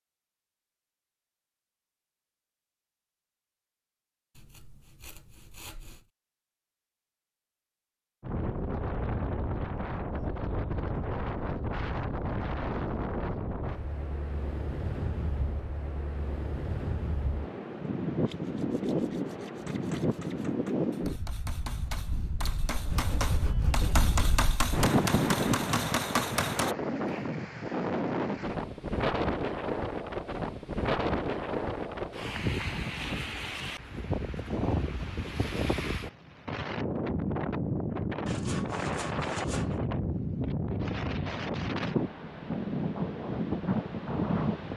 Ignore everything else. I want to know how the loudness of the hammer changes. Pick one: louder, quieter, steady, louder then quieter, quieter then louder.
louder.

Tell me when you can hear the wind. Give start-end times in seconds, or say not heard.
8.2-44.7.